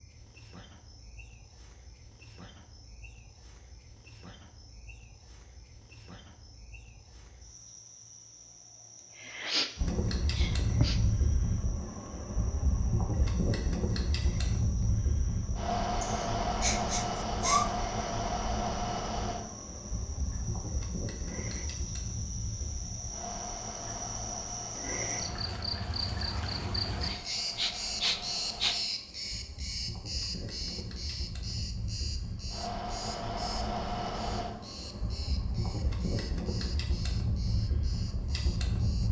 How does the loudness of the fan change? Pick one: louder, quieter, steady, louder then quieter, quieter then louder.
quieter then louder.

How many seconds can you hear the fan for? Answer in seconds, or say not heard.
29 s.